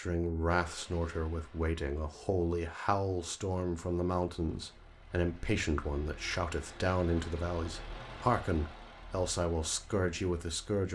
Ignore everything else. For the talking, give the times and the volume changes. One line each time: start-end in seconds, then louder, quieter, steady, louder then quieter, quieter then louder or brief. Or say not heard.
0.0-10.9 steady.